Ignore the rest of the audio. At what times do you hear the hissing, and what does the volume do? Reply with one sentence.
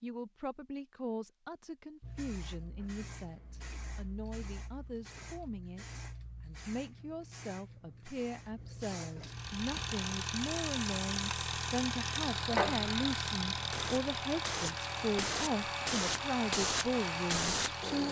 You can hear the hissing from 2.0 to 18.0 s, getting louder.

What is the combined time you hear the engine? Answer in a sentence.
You can hear the engine for 9 seconds altogether.